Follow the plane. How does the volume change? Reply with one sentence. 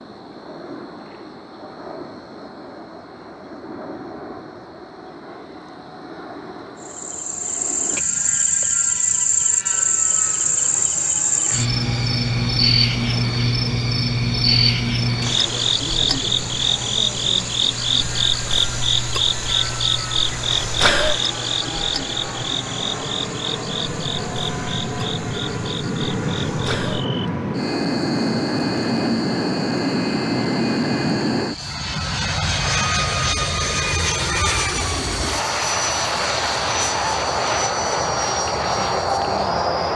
The volume of the plane goes up.